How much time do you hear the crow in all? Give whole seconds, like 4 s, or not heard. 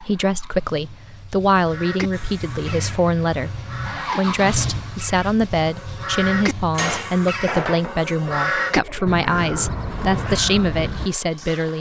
10 s.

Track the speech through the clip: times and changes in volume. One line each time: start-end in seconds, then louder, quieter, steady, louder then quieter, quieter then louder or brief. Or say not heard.
0.0-11.7 steady.